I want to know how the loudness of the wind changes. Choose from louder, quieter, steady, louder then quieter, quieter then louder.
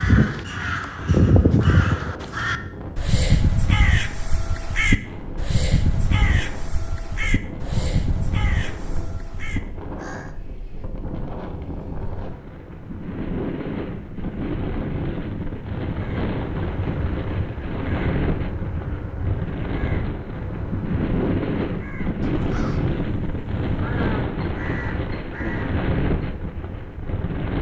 louder.